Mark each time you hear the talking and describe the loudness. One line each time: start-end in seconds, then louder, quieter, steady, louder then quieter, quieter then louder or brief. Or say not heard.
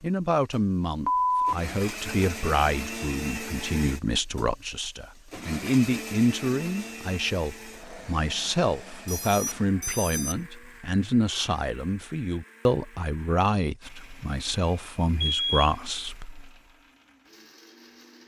0.0-16.4 steady.